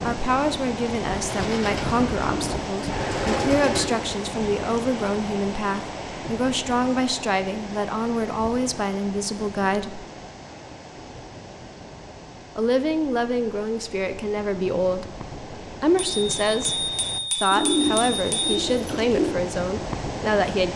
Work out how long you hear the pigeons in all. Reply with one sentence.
You can hear the pigeons for 5 seconds altogether.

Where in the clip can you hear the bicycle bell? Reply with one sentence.
You can hear the bicycle bell from 15.9 to 18.6 s.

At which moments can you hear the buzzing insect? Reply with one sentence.
The buzzing insect can't be heard in this clip.